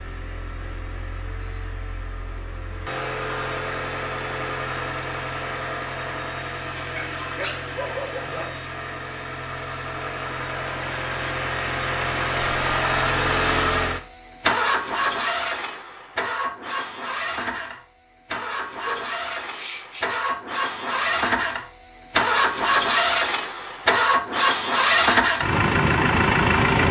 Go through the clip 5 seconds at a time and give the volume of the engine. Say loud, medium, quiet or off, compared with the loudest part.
quiet, quiet, medium, medium, loud, loud.